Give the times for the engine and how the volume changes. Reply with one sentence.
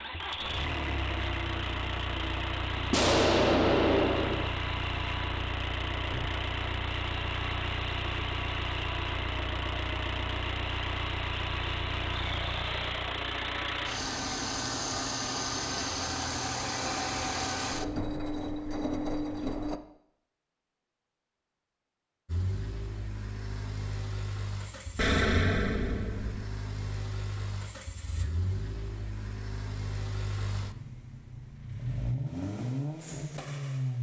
The engine can be heard from 0.0 to 19.8 s, at a steady volume; and from 22.2 to 33.9 s, getting louder.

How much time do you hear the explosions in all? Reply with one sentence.
You can hear the explosions for 3 seconds altogether.